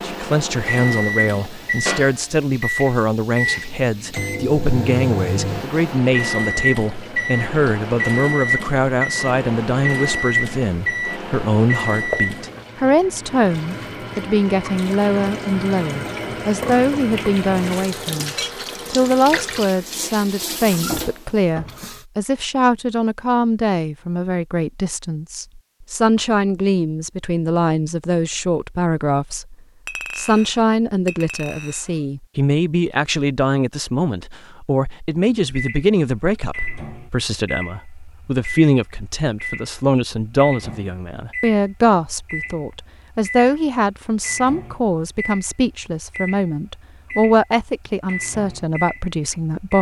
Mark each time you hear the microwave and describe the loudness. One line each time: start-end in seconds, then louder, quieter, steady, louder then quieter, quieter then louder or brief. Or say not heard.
0.0-12.7 steady
35.5-49.7 steady.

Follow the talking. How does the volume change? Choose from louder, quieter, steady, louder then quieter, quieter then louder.
steady.